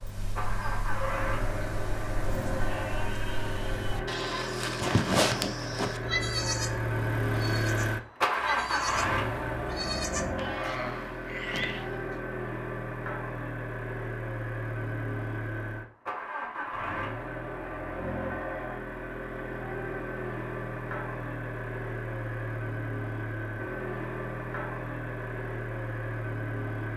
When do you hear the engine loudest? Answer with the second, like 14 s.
9 s.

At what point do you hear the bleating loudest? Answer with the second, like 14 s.
5 s.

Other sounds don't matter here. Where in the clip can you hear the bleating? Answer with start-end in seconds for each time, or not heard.
0.0-11.9.